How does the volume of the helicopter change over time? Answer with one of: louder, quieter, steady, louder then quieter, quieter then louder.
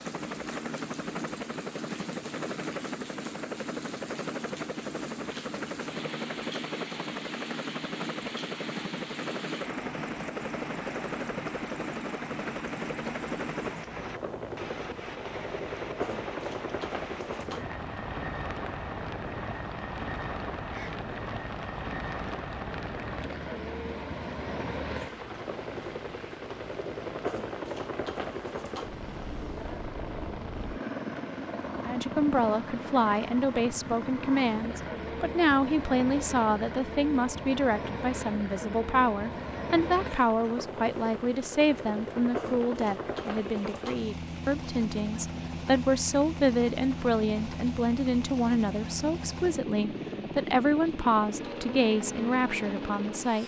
steady.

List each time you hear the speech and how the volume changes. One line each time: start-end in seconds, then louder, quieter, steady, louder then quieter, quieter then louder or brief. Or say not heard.
31.9-53.4 steady.